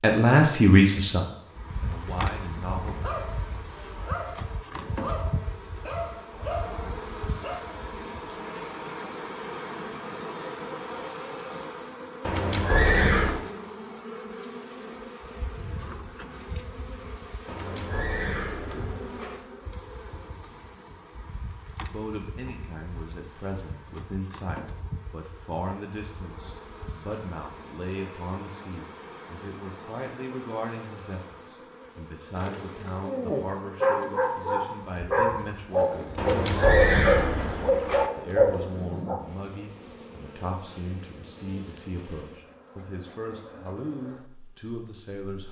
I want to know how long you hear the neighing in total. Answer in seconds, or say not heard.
5 s.